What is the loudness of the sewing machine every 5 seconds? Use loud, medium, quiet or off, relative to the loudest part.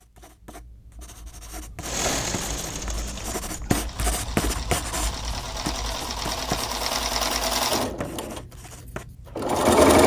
medium, loud.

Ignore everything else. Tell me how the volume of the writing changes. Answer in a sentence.
The loudness of the writing goes up, then down.